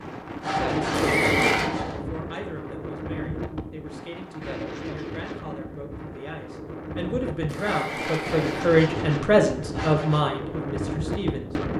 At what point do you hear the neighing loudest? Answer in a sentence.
The volume of the neighing peaks at 1 second.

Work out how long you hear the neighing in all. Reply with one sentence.
The neighing can be heard for 2 seconds in total.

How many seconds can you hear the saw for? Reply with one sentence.
You can hear the saw for 4 seconds altogether.